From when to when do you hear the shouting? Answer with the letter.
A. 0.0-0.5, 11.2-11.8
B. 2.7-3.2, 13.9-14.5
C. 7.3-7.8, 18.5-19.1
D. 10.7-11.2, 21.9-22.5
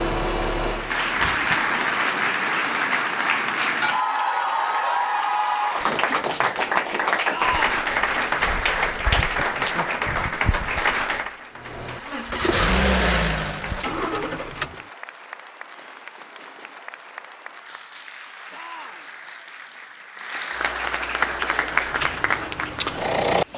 C.